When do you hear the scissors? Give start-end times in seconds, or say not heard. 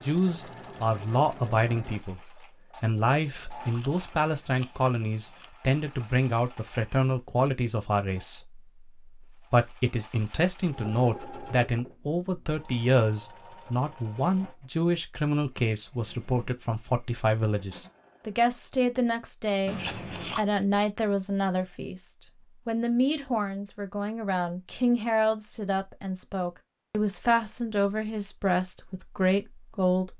3.0-5.5, 19.6-20.4.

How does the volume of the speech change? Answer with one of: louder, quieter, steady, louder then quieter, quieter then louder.
steady.